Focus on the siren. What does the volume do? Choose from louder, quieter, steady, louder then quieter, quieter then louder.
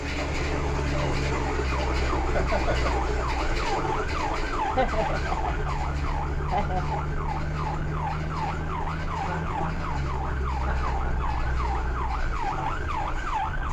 steady.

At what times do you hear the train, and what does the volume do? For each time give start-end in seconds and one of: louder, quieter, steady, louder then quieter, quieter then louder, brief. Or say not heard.
0.0-13.6 quieter.